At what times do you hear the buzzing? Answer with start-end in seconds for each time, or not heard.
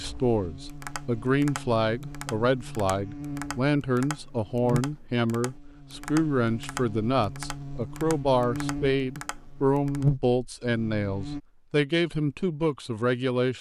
0.0-11.4.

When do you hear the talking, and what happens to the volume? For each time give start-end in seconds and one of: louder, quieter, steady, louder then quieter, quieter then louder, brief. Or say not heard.
0.0-13.5 steady.